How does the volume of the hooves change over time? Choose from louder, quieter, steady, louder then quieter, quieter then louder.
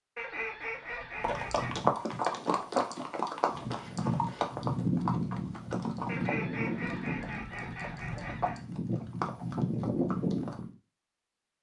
quieter then louder.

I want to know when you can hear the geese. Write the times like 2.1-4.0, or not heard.
0.1-1.8, 6.0-8.6.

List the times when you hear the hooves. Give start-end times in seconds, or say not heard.
1.2-10.7.